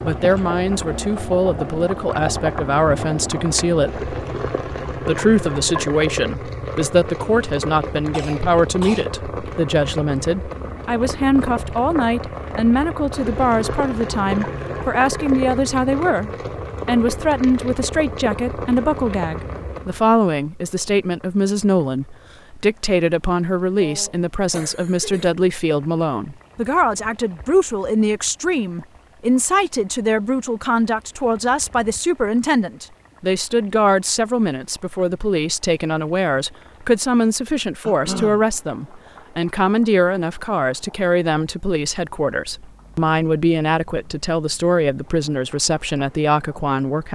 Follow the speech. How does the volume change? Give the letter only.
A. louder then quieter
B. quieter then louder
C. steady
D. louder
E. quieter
C.